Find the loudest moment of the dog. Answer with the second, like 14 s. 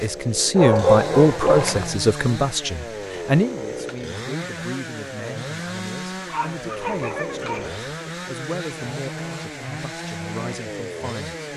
1 s.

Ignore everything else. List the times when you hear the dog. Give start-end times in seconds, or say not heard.
0.6-2.0, 6.2-7.8.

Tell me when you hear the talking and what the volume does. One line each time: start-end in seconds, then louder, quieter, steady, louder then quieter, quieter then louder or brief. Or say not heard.
0.0-11.4 quieter.